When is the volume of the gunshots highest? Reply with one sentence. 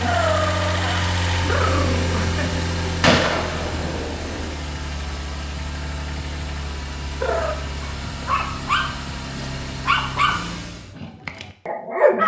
The loudest moment of the gunshots is at 3 seconds.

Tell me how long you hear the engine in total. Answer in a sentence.
You can hear the engine for 11 seconds altogether.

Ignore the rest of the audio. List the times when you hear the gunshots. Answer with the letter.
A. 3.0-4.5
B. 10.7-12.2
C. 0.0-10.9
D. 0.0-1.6
A.